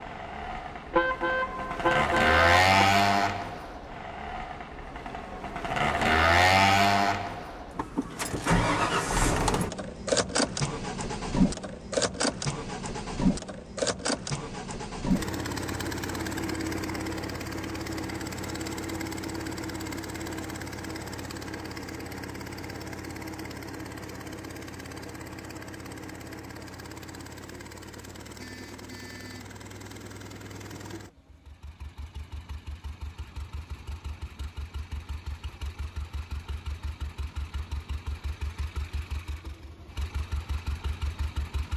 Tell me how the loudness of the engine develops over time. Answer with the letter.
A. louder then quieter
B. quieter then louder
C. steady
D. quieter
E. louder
D.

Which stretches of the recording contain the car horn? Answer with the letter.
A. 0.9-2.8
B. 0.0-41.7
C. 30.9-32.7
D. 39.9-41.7
A.